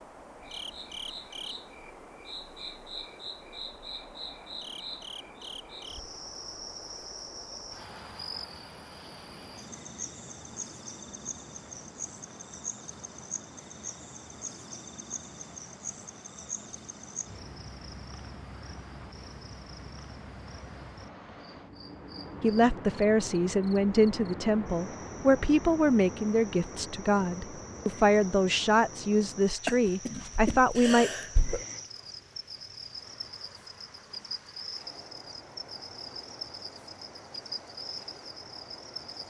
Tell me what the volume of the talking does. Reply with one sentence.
The volume of the talking stays about the same.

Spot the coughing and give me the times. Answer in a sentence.
You can hear the coughing from 29.6 to 31.6 s.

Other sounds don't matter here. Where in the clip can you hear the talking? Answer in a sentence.
The talking can be heard from 22.4 to 31.1 s.